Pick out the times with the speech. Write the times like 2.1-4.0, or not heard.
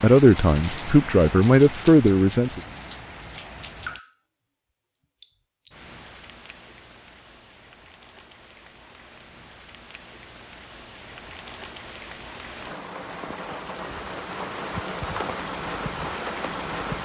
0.0-2.6.